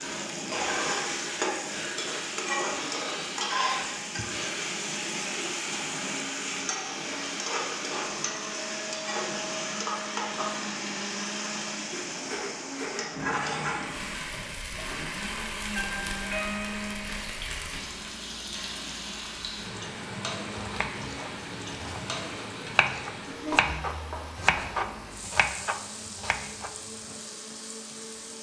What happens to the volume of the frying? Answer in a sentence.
The loudness of the frying goes down.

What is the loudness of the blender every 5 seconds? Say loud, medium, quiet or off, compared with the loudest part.
loud, loud, loud, loud, medium, medium.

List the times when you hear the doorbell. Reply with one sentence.
You can hear the doorbell from 15.7 to 17.2 s.